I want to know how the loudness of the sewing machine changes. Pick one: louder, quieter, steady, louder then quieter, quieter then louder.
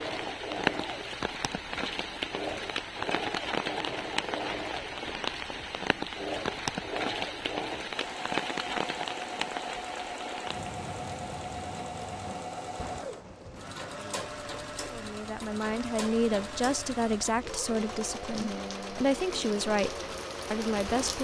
steady.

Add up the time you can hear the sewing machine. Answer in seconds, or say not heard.
21 s.